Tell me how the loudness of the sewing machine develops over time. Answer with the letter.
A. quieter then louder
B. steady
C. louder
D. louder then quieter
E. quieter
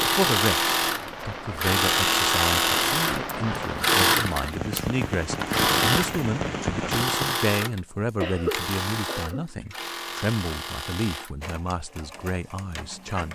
E.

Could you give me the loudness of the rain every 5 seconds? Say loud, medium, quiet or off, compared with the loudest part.
loud, loud, off.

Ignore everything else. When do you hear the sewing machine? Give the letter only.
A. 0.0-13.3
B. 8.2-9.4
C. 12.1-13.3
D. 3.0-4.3
A.